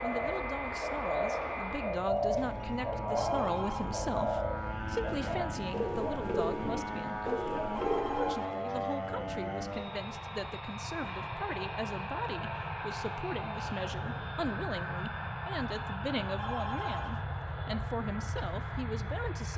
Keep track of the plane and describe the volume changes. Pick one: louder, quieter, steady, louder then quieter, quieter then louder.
steady.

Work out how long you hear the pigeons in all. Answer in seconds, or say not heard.
9 s.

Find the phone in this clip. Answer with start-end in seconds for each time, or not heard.
3.1-3.9, 7.8-8.6, 16.4-17.2.